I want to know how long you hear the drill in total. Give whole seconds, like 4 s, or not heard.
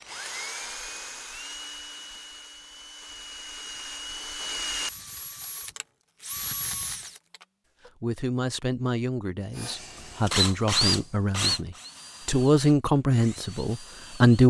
13 s.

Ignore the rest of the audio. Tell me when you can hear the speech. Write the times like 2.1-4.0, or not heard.
8.0-14.4.